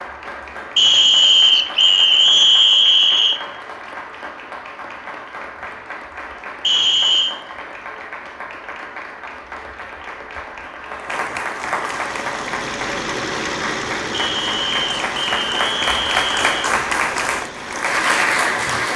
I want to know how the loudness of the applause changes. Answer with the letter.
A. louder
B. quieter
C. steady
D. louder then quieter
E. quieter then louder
A.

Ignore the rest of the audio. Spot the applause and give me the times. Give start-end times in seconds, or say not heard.
0.0-18.9.